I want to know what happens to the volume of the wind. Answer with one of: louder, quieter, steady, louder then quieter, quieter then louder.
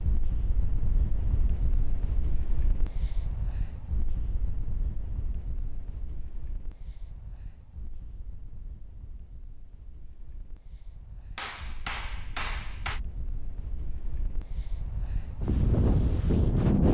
quieter then louder.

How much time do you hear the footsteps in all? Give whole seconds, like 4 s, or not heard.
not heard.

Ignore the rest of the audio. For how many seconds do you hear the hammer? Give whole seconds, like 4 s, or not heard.
2 s.